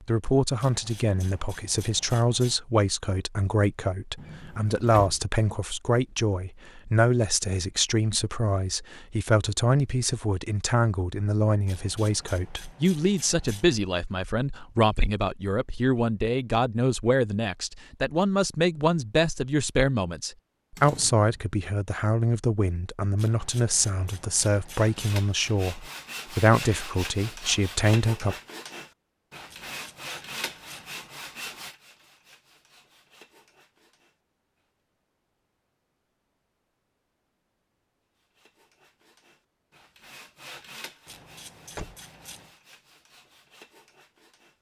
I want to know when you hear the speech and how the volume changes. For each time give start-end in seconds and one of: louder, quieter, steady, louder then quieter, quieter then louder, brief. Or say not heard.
0.1-28.4 steady.